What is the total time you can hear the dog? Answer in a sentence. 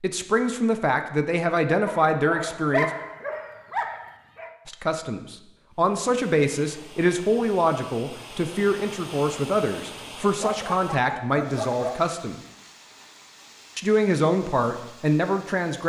The dog can be heard for 4 seconds in total.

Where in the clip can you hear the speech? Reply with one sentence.
You can hear the speech from 0.0 to 2.9 s, from 4.7 to 12.3 s and from 13.8 to 15.8 s.